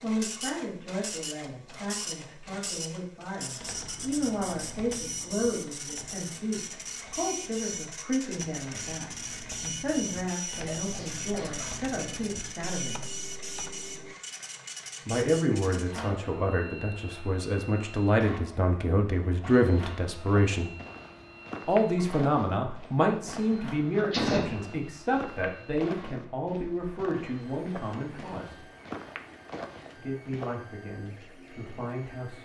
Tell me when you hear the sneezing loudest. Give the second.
24 s.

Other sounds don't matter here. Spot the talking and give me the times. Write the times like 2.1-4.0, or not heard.
0.0-13.1, 15.1-20.7, 21.6-28.6, 29.9-32.3.